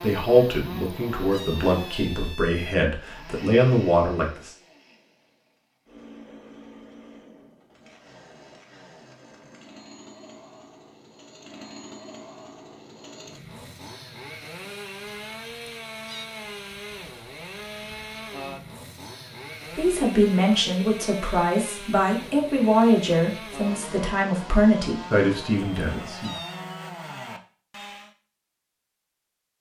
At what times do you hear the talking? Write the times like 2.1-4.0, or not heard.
0.0-4.5, 19.8-26.4.